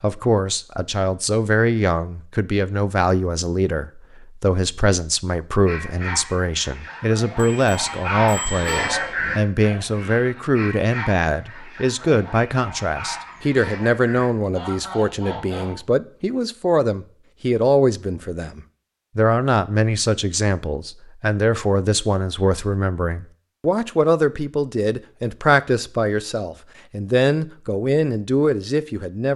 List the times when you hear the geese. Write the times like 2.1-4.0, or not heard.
5.7-15.8.